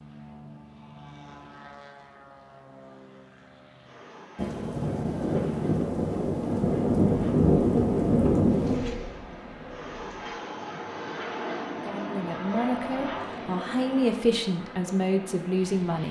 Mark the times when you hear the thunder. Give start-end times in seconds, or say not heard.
4.3-8.8.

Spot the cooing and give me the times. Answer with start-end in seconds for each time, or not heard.
8.4-10.3.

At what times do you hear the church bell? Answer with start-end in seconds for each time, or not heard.
not heard.